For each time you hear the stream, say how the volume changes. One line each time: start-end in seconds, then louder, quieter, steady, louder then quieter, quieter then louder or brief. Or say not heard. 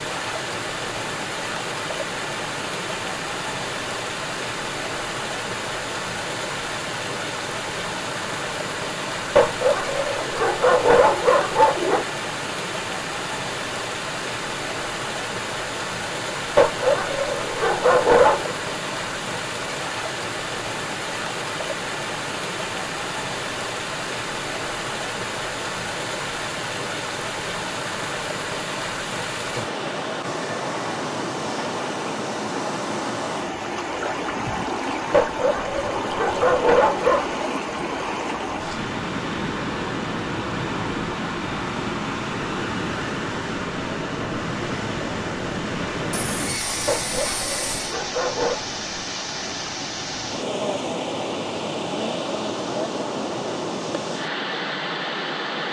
0.0-55.6 steady.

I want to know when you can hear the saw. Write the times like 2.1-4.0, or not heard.
46.1-48.0.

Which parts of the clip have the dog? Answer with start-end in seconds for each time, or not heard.
9.3-12.1, 16.6-18.6, 35.1-37.4, 46.9-48.6.